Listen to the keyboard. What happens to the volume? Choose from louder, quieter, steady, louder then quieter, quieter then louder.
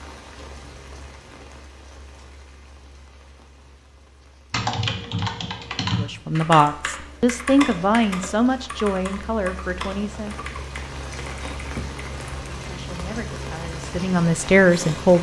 quieter.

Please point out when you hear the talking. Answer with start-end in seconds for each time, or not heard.
6.0-10.4, 12.6-15.1.